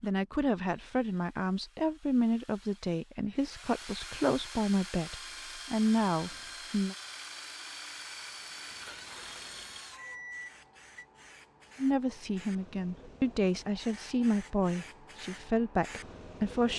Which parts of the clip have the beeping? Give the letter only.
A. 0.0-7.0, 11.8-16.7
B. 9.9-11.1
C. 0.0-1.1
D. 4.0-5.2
B.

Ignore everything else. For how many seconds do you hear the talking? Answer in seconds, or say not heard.
12 s.